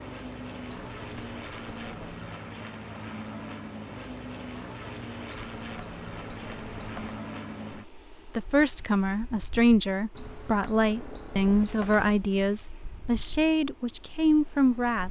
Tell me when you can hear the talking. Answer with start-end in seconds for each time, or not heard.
8.3-15.0.